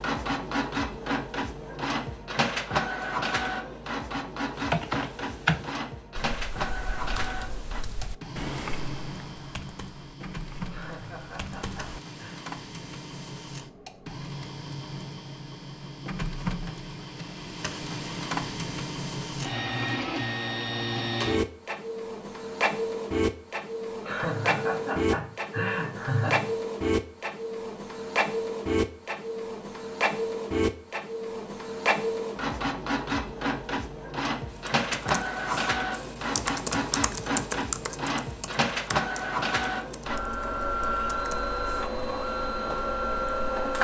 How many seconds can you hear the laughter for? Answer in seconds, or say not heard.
4 s.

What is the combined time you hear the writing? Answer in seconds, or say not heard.
not heard.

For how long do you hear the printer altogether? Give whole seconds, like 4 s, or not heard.
44 s.